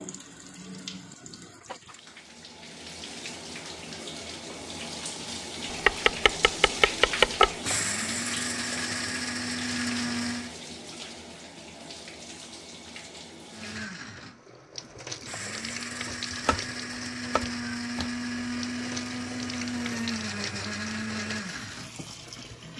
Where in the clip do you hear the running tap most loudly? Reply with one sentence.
The volume of the running tap peaks at 7 seconds.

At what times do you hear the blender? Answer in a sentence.
The blender can be heard from 7.5 to 10.6 s and from 13.4 to 22.7 s.